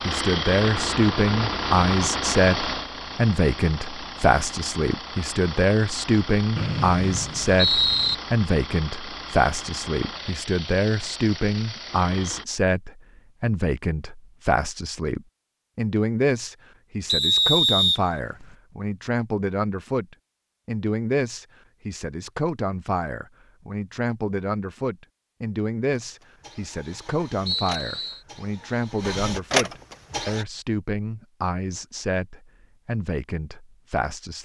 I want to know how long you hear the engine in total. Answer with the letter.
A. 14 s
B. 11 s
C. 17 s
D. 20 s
C.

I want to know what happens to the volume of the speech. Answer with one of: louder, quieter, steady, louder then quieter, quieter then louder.
quieter.